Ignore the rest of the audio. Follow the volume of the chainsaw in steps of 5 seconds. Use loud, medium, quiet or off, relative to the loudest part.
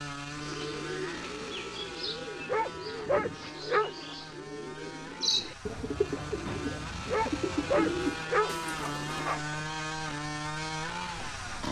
medium, loud, loud.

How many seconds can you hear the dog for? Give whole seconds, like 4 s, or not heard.
4 s.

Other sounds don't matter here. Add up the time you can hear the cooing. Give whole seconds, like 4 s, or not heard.
9 s.